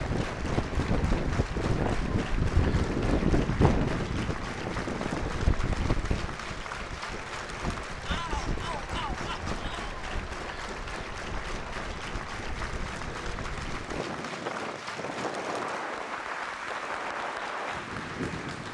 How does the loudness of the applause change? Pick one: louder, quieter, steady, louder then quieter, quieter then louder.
steady.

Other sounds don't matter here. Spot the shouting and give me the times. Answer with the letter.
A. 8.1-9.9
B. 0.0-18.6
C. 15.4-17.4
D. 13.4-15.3
A.